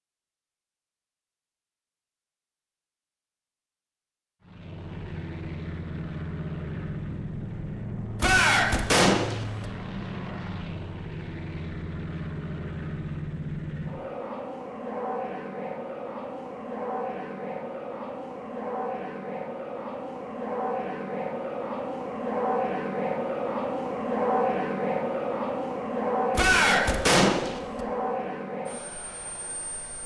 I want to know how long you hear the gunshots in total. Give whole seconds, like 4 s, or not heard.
3 s.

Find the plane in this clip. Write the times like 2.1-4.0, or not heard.
4.4-30.0.